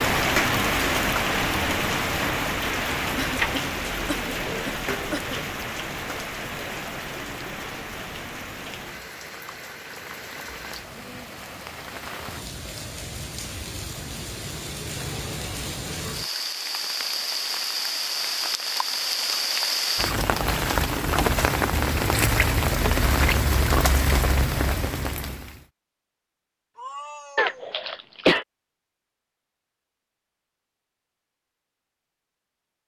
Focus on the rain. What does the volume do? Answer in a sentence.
The loudness of the rain goes down, then up.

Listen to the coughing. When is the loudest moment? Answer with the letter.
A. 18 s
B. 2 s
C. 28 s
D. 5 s
C.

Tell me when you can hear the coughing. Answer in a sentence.
The coughing can be heard from 3.1 to 5.4 s and from 27.4 to 28.4 s.